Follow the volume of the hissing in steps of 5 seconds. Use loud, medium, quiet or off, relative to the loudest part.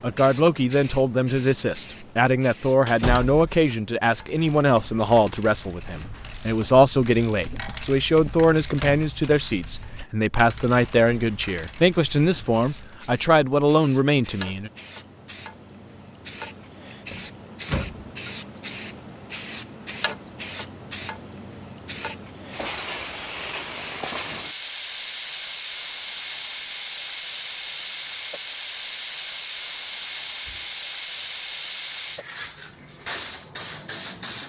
medium, quiet, quiet, medium, loud, loud, loud.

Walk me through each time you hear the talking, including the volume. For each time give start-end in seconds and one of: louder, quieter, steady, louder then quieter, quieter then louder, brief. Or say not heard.
0.0-14.7 steady.